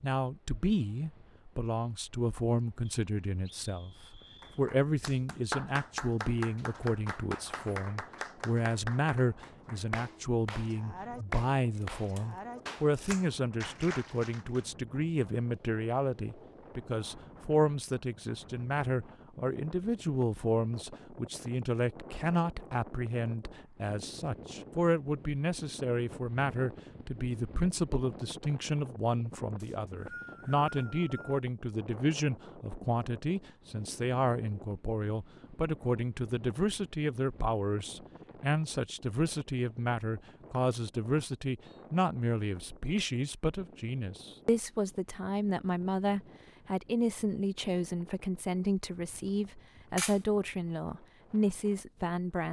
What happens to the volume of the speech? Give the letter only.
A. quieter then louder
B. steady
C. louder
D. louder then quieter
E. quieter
B.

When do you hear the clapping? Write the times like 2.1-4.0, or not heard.
4.4-14.7.